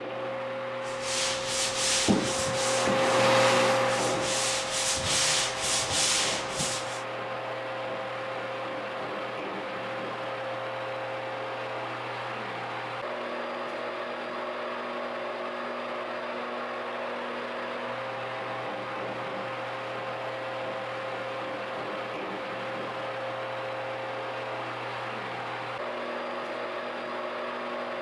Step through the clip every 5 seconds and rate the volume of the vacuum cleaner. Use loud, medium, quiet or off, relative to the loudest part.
loud, medium, medium, medium, medium, medium.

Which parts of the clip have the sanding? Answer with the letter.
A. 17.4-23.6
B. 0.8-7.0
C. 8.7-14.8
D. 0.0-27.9
B.